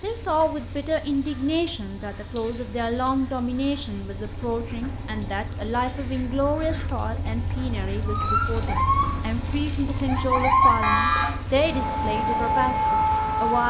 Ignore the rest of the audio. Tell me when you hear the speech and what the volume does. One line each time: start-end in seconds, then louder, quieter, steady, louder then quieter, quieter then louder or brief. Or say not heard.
0.0-13.6 steady.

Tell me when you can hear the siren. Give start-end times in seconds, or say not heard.
8.1-13.6.